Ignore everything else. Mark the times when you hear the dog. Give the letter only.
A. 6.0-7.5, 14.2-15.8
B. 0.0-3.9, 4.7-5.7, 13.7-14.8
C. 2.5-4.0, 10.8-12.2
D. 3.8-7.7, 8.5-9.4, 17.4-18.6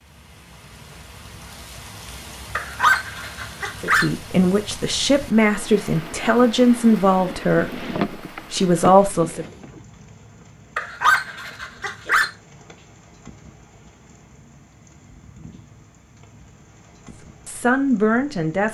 C.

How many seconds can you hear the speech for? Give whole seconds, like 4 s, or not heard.
6 s.